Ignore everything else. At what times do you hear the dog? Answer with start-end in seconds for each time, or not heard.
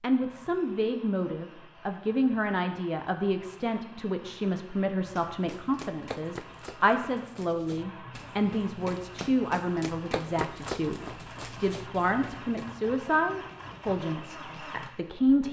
not heard.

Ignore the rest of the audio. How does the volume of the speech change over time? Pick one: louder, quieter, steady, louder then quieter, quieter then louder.
steady.